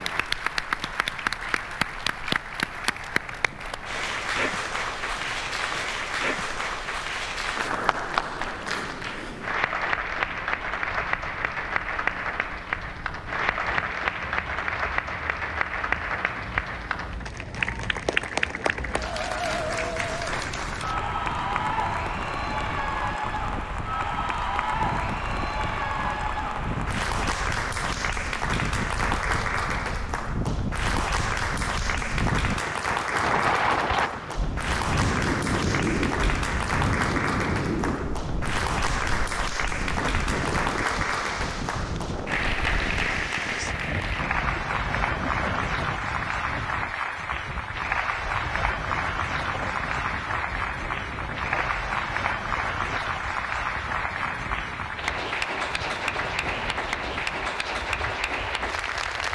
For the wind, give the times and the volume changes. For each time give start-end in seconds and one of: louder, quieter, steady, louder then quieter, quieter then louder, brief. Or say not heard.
0.0-59.3 louder then quieter.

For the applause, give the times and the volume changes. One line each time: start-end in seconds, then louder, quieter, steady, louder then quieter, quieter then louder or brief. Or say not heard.
0.0-59.3 steady.